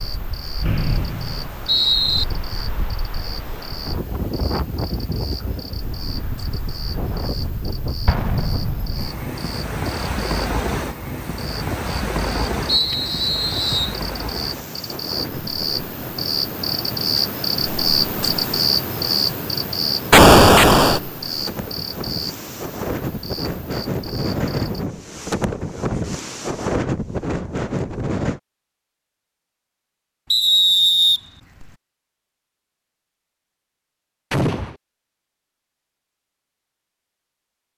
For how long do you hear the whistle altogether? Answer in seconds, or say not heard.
4 s.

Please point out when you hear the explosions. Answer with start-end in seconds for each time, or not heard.
8.1-9.2, 20.1-21.0, 34.3-34.8.